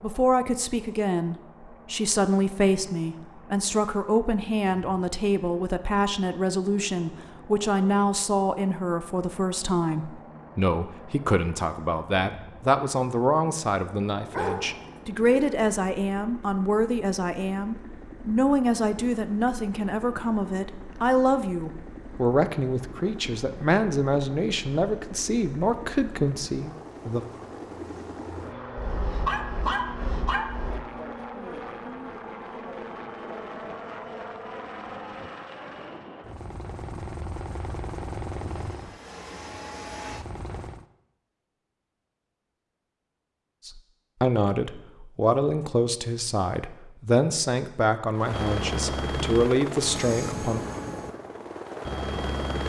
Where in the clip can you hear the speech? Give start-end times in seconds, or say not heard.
0.0-27.2, 43.6-50.6.